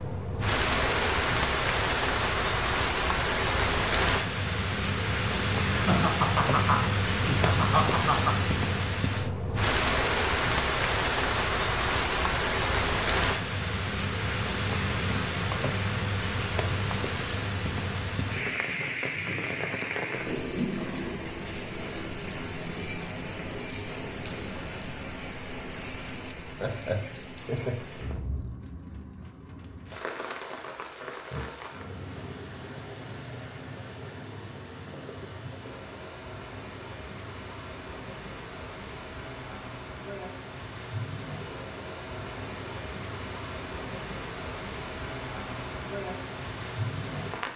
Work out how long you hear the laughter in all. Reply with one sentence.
You can hear the laughter for 4 seconds altogether.